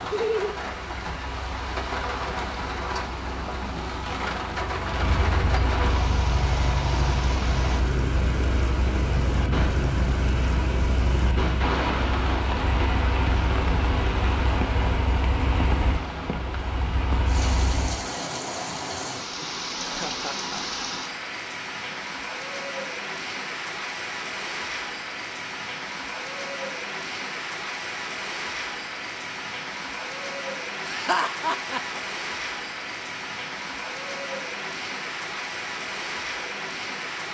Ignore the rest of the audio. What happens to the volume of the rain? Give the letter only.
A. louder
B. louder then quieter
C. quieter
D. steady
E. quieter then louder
D.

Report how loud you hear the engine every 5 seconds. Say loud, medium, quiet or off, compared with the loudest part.
quiet, loud, loud, loud, off, off, off, off.